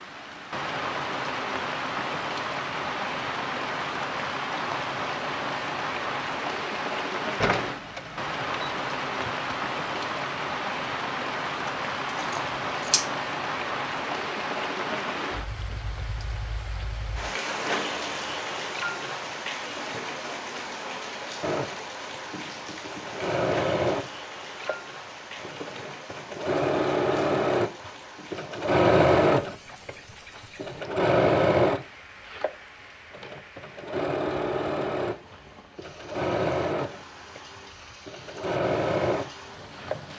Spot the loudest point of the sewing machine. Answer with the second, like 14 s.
29 s.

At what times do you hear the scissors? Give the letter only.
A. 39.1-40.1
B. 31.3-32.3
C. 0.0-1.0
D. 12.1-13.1
D.